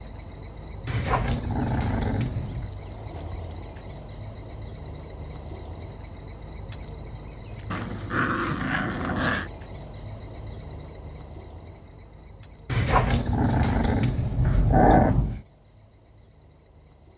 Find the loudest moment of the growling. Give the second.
15 s.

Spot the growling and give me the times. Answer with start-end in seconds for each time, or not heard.
0.8-2.7, 7.7-9.5, 12.7-15.4.